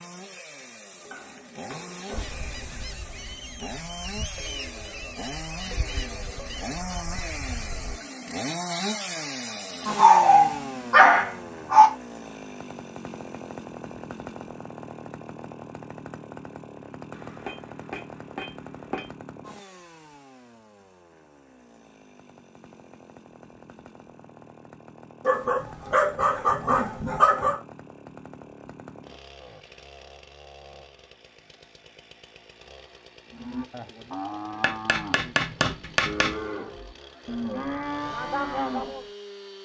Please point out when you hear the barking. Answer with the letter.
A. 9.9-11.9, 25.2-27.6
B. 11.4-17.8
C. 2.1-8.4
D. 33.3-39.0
A.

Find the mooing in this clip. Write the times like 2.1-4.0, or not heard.
33.3-39.0.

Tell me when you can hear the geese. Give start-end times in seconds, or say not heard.
2.1-8.4.